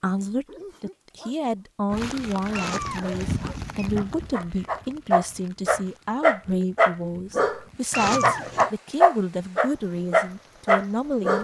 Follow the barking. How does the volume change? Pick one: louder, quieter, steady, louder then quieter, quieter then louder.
louder.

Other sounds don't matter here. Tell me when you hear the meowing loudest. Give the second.
8 s.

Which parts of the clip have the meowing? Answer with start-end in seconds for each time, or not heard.
2.5-3.9, 7.9-8.7.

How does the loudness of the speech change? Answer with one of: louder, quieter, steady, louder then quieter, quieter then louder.
steady.